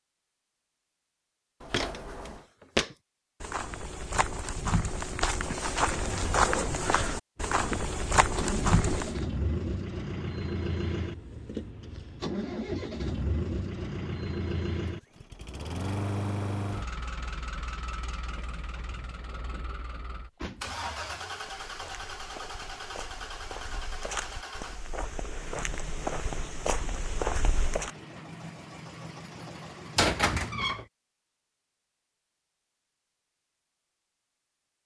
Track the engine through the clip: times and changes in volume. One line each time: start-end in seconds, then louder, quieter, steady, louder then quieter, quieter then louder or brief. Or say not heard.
7.5-30.6 quieter.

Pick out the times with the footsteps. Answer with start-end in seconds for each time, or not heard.
1.7-9.2, 21.4-27.9.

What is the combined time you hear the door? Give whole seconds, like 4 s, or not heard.
3 s.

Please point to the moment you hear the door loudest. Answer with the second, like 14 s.
30 s.